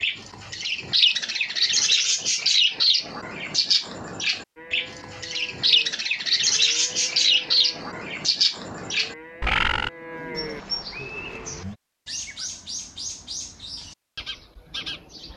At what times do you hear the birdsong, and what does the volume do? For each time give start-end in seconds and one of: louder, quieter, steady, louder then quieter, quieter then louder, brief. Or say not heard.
0.0-15.3 quieter.